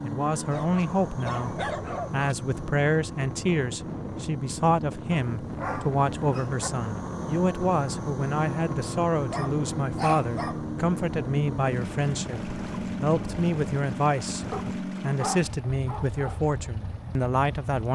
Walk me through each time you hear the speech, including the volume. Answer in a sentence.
You can hear the speech from 0.0 to 17.9 s, at a steady volume.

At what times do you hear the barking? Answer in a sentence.
The barking can be heard from 0.5 to 2.4 s, from 5.2 to 6.7 s, from 9.2 to 10.7 s and from 14.5 to 16.4 s.